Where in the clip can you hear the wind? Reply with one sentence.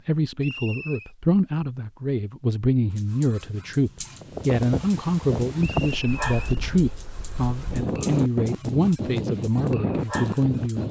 The wind can be heard from 4.2 to 10.8 s.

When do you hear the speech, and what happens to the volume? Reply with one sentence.
The speech can be heard from 0.1 to 10.8 s, at a steady volume.